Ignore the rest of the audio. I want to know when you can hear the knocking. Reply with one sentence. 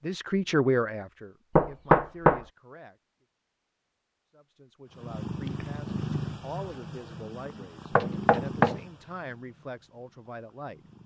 You can hear the knocking from 1.6 to 2.4 s and from 8.0 to 8.8 s.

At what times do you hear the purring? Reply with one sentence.
The purring can be heard from 4.9 to 11.0 s.